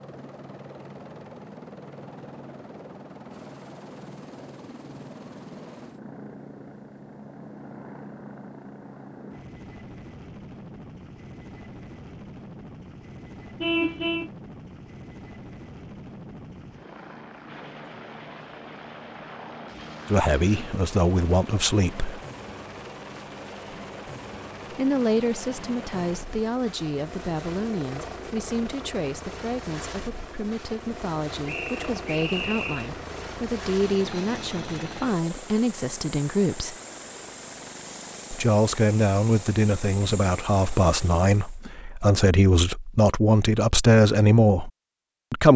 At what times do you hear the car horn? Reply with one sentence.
You can hear the car horn from 13.6 to 14.3 s.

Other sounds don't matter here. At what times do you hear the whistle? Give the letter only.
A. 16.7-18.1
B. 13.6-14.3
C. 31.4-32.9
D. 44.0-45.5
C.